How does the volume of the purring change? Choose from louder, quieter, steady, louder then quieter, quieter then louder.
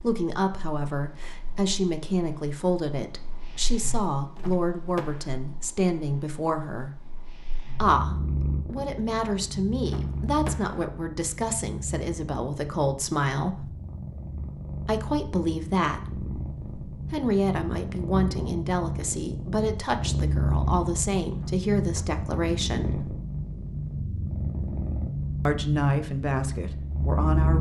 louder.